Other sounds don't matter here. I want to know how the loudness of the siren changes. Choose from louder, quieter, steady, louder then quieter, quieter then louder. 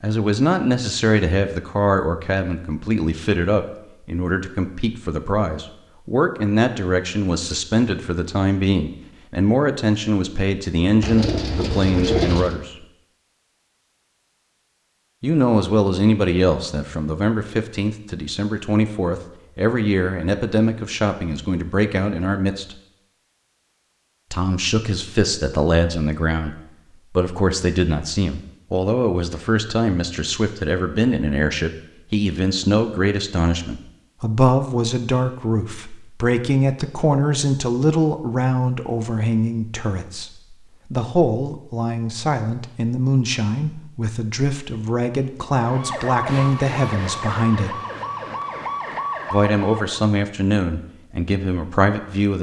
steady.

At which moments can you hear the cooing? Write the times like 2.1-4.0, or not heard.
11.0-12.6.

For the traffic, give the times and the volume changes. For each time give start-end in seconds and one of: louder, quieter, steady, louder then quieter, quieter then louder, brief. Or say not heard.
not heard.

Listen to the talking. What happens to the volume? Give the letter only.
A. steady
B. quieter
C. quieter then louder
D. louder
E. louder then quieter
A.